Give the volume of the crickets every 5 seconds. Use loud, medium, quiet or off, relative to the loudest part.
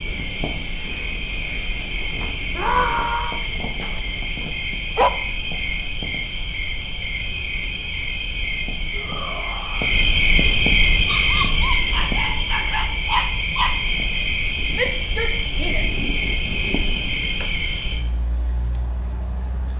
medium, medium, loud, medium.